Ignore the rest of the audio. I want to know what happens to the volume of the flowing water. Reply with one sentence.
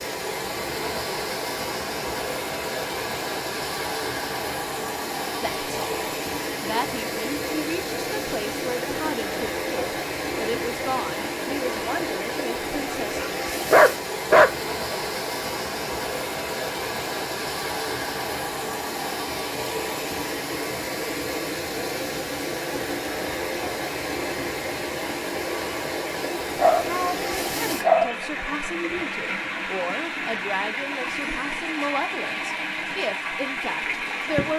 The volume of the flowing water stays about the same.